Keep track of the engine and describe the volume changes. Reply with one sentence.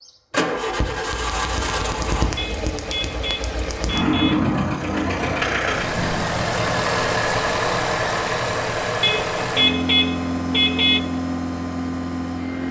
The volume of the engine stays about the same.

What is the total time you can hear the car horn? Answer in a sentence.
You can hear the car horn for 4 seconds altogether.